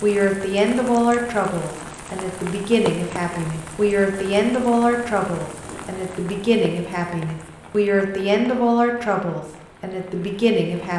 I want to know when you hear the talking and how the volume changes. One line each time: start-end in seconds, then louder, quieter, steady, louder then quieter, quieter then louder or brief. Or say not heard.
0.0-10.9 steady.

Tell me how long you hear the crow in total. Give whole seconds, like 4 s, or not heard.
not heard.